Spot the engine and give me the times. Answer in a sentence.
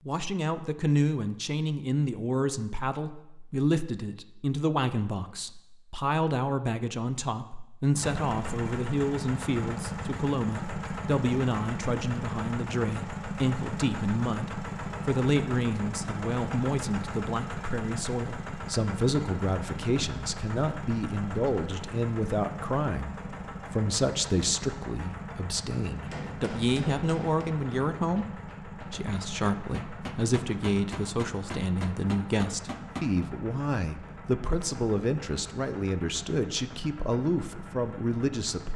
You can hear the engine from 8.0 to 38.7 s.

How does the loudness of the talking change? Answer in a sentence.
The volume of the talking stays about the same.